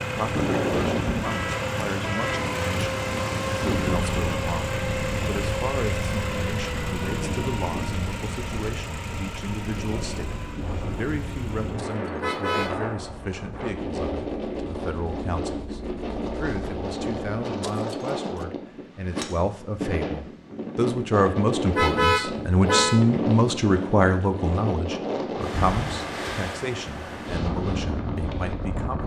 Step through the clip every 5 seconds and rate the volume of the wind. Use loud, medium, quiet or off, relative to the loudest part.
loud, medium, loud, loud, loud, loud.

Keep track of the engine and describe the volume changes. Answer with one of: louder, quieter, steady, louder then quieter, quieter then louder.
quieter.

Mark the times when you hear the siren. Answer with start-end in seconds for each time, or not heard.
not heard.